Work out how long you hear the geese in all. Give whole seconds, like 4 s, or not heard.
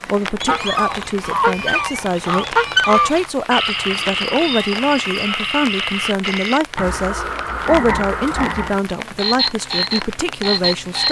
3 s.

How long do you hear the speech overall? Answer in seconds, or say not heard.
11 s.